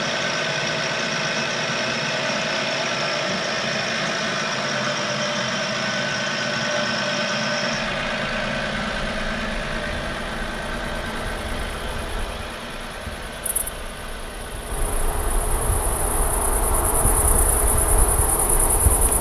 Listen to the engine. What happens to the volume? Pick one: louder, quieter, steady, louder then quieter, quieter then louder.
quieter.